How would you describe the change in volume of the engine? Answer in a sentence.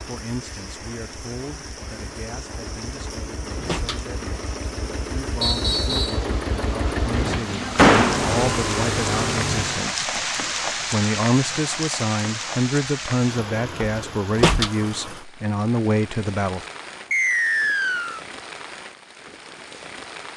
The loudness of the engine goes up.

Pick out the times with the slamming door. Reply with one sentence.
You can hear the slamming door from 3.0 to 4.5 s, from 7.2 to 8.3 s and from 13.8 to 14.7 s.